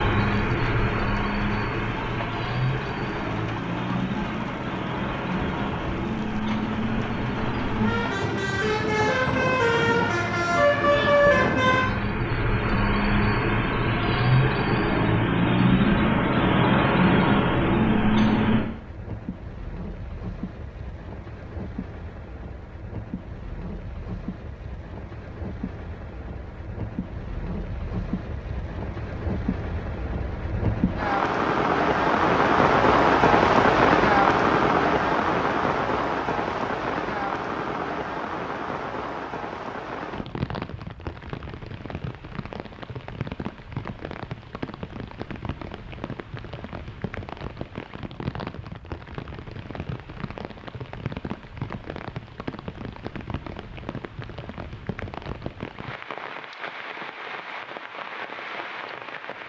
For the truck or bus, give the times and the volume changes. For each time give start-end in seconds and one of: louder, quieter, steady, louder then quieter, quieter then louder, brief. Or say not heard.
0.0-18.6 louder.